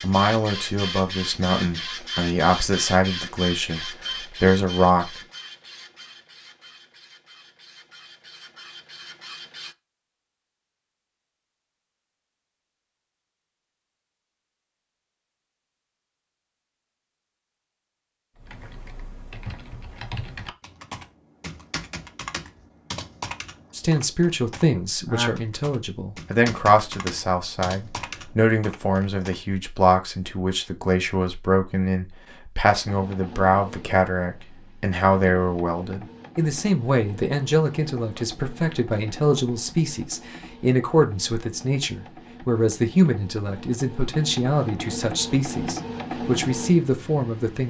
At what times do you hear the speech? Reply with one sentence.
The speech can be heard from 0.0 to 5.1 s and from 23.8 to 47.6 s.